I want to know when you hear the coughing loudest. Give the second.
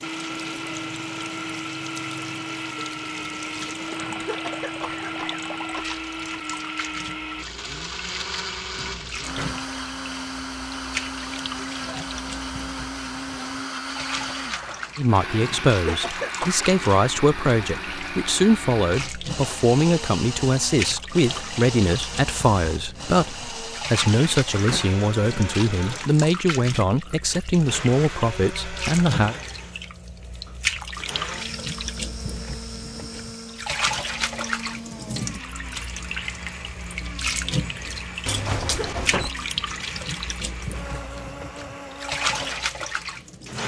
16 s.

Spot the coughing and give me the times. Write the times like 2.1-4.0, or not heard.
4.2-6.0, 15.8-16.7, 38.7-39.2.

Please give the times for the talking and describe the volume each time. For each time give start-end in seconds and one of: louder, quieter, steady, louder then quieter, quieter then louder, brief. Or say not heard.
14.9-29.4 steady.